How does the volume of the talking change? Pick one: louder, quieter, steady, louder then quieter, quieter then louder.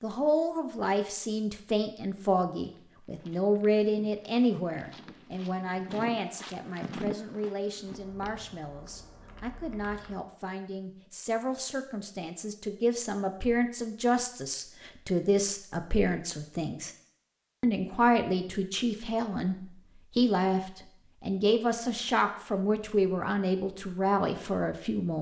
quieter then louder.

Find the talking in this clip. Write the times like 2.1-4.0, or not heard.
0.0-16.9, 17.6-25.1.